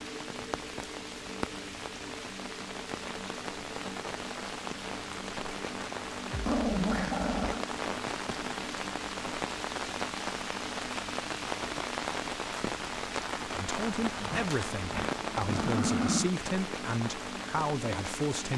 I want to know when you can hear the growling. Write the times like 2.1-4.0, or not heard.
6.3-7.7, 14.1-16.4.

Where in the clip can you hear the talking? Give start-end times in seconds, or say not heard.
13.6-18.5.